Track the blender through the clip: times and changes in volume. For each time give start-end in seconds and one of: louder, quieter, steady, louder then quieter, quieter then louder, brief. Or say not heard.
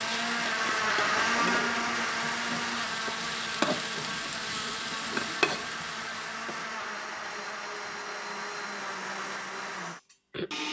0.0-10.6 quieter.